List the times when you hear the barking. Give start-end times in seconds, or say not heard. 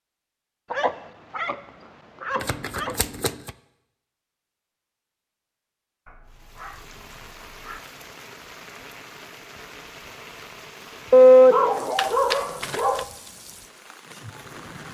0.7-1.6, 2.2-3.0, 6.0-7.8, 11.1-13.1.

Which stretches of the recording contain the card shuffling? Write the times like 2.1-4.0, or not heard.
2.4-3.5, 11.9-13.1.